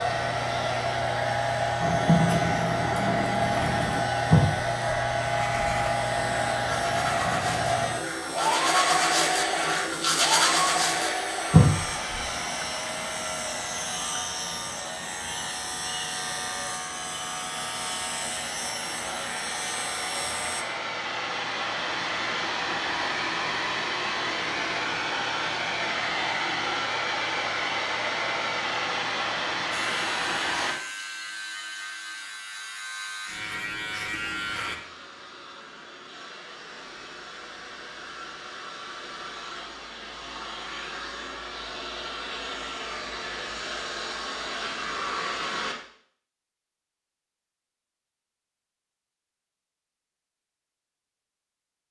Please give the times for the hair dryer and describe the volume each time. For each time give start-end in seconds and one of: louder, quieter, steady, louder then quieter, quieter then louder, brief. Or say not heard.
0.0-30.8 quieter then louder
34.2-45.8 louder.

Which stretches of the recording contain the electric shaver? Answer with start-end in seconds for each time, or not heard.
0.0-20.6, 29.7-34.8.